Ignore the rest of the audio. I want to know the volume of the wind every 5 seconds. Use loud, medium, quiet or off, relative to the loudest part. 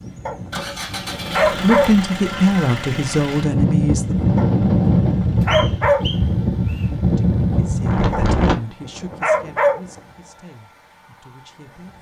loud, loud, off.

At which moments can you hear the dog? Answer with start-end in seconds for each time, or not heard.
0.2-2.0, 4.3-6.2, 8.1-10.0.